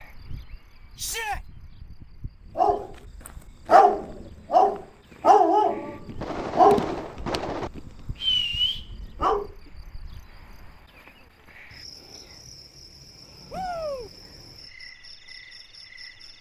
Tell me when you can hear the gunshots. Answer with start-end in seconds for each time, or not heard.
6.2-7.7.